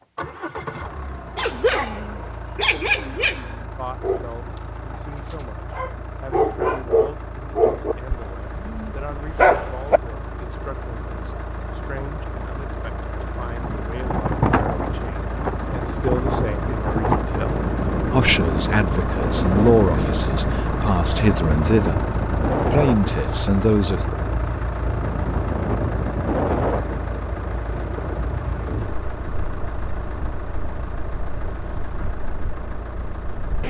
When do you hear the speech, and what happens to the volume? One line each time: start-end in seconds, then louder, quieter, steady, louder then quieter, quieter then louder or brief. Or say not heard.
3.8-24.1 louder.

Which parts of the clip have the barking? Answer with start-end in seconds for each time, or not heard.
1.4-10.0.